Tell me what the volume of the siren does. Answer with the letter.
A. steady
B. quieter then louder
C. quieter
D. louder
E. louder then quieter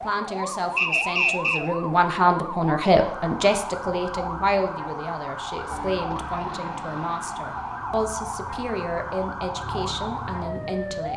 A.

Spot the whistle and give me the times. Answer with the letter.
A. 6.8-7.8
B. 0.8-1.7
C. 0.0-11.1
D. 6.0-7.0
B.